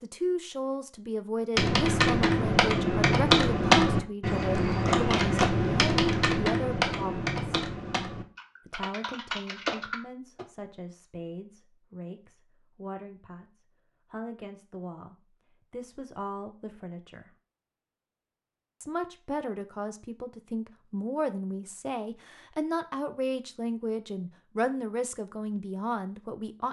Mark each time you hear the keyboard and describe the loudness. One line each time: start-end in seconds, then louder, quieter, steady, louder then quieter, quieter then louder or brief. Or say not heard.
1.6-10.4 quieter.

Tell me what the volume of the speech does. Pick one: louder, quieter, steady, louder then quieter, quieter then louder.
quieter then louder.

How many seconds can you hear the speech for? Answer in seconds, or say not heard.
24 s.